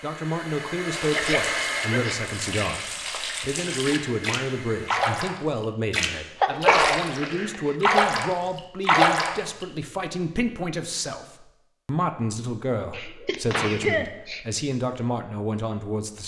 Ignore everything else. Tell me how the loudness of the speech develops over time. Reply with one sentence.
The volume of the speech stays about the same.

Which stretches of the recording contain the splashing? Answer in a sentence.
The splashing can be heard from 0.9 to 7.2 s and from 7.8 to 9.3 s.